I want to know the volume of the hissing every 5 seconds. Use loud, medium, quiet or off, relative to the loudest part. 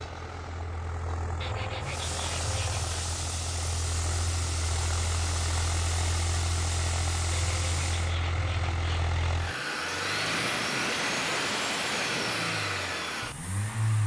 loud, loud, off.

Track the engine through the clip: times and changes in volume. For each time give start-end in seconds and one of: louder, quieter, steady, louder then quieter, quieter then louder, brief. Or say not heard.
0.0-14.0 louder.